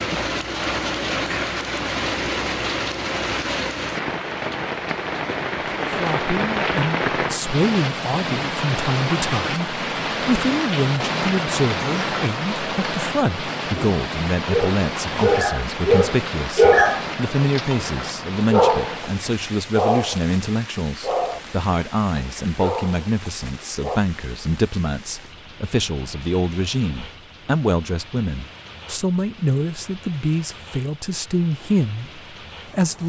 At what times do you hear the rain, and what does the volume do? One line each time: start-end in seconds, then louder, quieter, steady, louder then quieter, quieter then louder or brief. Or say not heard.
0.0-33.0 quieter.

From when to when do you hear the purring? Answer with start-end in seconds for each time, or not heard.
not heard.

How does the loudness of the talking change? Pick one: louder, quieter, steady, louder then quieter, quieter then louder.
steady.